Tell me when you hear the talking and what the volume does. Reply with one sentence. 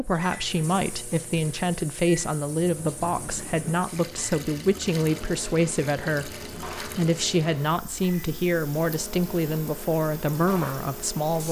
You can hear the talking from 0.0 to 11.4 s, at a steady volume.